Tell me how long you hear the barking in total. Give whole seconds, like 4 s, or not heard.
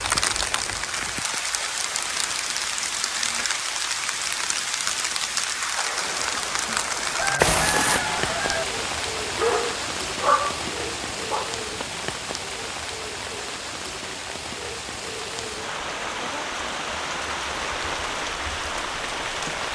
2 s.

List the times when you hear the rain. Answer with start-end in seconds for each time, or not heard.
0.0-19.6.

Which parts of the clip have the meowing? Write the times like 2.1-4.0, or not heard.
not heard.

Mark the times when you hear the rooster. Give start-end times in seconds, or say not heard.
7.0-8.7.